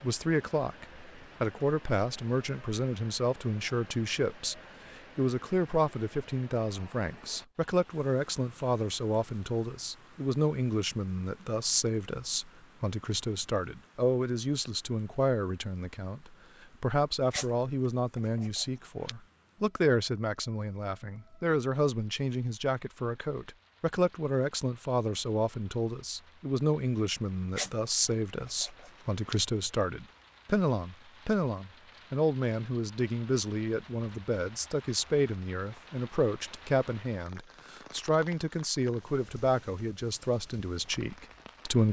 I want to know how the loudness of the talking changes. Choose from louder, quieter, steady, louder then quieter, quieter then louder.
steady.